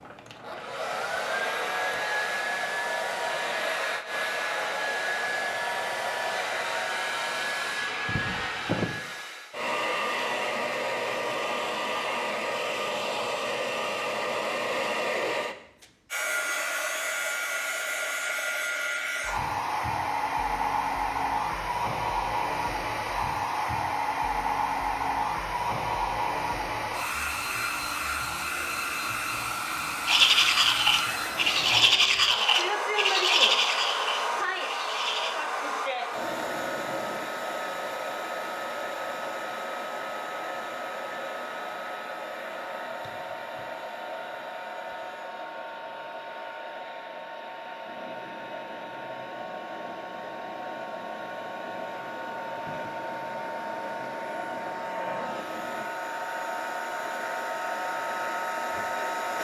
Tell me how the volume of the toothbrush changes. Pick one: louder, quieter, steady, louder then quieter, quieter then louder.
quieter.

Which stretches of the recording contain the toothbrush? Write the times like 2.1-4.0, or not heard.
30.1-35.3.